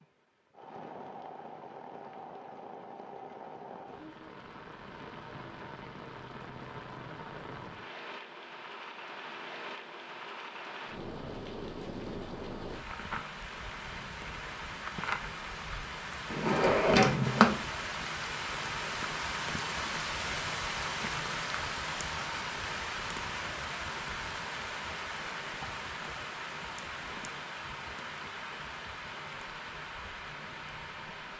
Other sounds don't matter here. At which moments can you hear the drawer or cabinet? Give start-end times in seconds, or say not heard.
16.3-17.6.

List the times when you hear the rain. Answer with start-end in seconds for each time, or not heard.
0.0-31.3.